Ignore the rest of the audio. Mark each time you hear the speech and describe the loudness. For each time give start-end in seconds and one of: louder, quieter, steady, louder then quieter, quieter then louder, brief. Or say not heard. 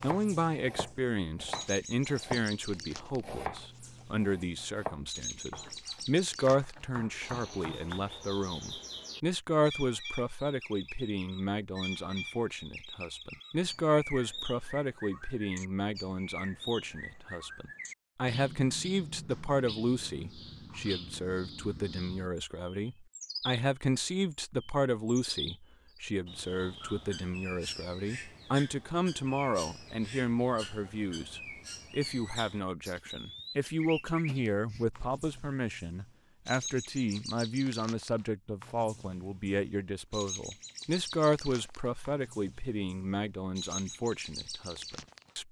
0.0-45.4 steady.